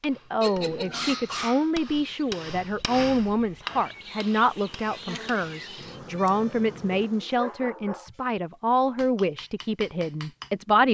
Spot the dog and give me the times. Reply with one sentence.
You can hear the dog from 0.4 to 1.7 s and from 7.0 to 8.2 s.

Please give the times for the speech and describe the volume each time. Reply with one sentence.
You can hear the speech from 0.0 to 10.8 s, at a steady volume.